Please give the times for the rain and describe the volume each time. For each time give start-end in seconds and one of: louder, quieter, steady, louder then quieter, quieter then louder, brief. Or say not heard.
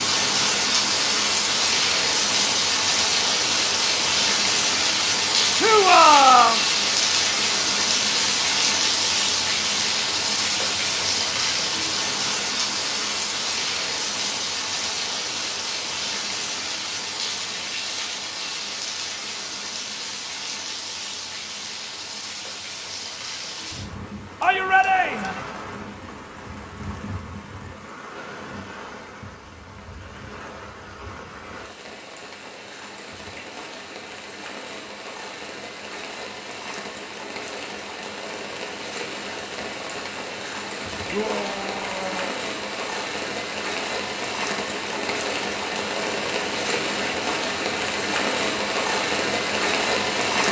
0.0-50.4 quieter then louder.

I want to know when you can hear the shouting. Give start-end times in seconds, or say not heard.
5.5-6.6, 24.4-25.4, 41.1-42.4.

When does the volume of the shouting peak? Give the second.
6 s.